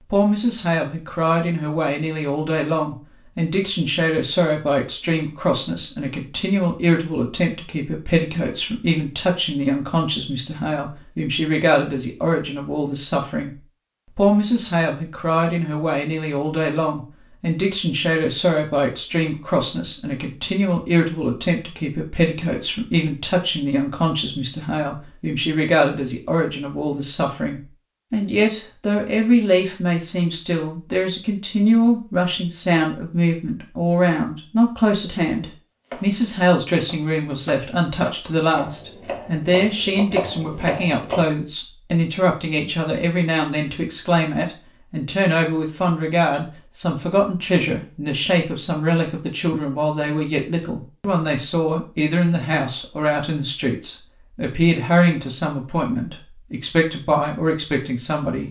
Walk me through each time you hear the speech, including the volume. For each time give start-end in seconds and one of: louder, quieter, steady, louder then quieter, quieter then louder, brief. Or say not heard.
0.1-58.4 steady.